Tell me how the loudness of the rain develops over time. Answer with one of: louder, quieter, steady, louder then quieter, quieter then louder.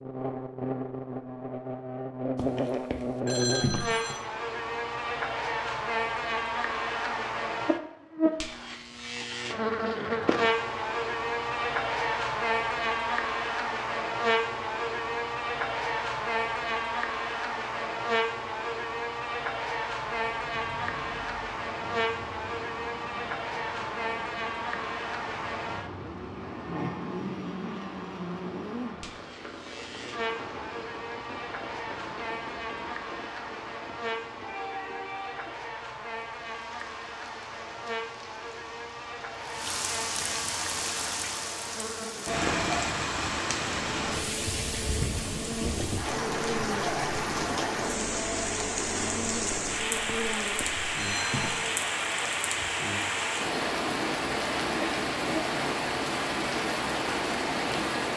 louder.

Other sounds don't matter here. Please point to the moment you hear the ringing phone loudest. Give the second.
4 s.